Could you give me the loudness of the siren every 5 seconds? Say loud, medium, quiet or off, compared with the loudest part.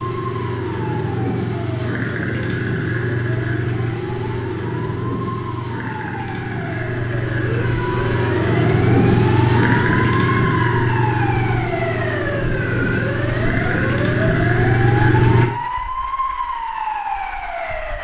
quiet, medium, loud, loud.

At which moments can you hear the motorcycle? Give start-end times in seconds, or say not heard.
0.0-15.4.